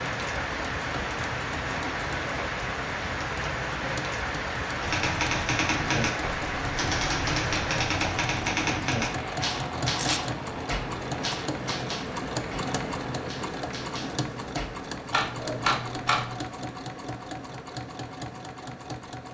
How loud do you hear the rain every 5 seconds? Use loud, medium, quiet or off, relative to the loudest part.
loud, loud, medium, off.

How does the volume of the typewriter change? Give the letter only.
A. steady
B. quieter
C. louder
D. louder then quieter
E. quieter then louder
E.